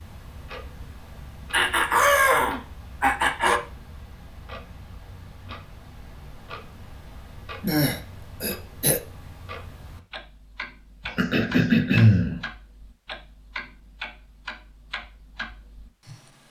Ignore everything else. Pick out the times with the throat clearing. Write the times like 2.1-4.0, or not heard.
1.5-3.6, 7.6-9.0, 11.1-12.4.